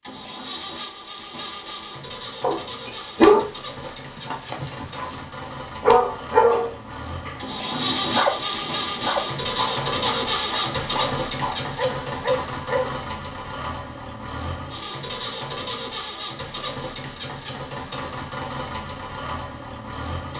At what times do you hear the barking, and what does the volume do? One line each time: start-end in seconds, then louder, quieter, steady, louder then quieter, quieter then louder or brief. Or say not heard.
2.4-12.9 quieter.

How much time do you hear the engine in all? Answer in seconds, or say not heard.
20 s.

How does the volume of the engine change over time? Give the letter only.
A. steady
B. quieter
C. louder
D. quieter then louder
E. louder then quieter
E.